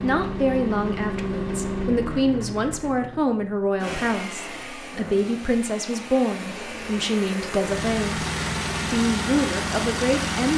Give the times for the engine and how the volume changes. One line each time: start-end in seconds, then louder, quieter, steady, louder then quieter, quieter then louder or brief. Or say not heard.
0.0-10.5 quieter then louder.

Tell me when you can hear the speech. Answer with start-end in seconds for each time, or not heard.
0.0-10.5.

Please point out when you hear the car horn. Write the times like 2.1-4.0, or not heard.
not heard.